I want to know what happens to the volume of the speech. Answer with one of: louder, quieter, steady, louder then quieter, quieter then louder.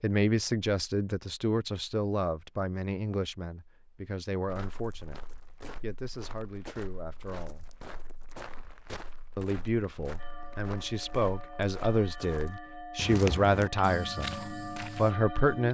quieter then louder.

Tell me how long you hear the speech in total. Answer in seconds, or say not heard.
14 s.